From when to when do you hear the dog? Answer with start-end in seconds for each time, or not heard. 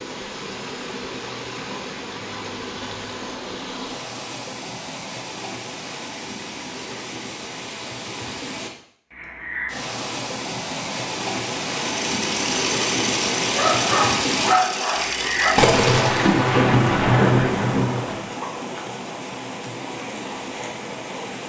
13.6-15.6.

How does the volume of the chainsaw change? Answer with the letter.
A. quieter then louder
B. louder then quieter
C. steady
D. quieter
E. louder
C.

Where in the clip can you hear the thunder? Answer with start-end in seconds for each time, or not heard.
15.6-18.4.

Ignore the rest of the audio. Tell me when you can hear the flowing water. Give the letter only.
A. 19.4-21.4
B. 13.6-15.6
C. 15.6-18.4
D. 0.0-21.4
D.